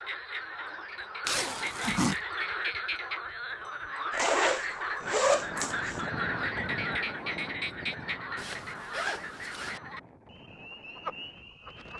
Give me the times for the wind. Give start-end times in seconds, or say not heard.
5.0-11.9.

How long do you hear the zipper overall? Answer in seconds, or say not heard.
4 s.